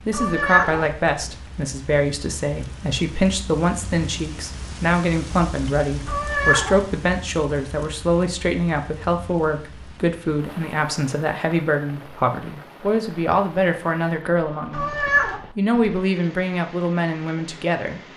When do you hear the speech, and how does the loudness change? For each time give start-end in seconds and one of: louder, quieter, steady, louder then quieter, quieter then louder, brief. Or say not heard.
0.1-14.9 steady
15.6-18.1 brief.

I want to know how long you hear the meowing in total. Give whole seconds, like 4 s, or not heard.
2 s.